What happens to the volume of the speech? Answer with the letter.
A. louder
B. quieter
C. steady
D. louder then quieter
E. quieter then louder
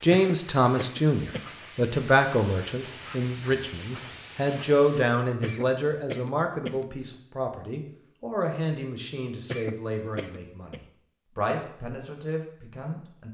B.